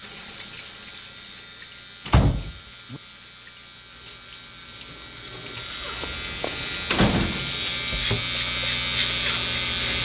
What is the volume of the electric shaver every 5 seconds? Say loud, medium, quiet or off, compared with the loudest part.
quiet, loud.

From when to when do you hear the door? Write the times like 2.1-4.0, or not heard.
2.0-3.0, 6.0-7.5.